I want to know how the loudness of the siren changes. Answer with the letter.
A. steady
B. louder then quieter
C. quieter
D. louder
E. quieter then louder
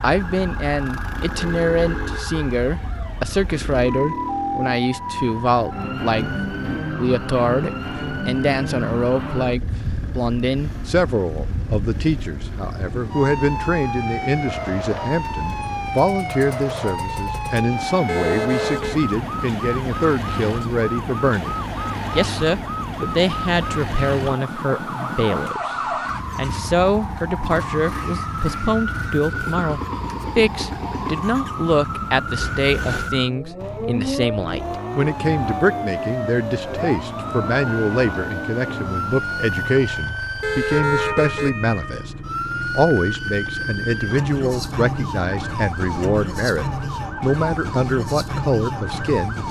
A.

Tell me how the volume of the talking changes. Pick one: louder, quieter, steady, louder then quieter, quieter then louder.
steady.